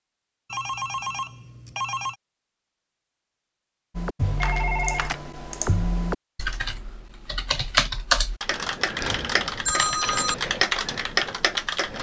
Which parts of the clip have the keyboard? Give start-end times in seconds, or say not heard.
4.0-11.9.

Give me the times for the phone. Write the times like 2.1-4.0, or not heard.
0.5-2.1, 4.4-5.2, 9.0-10.3.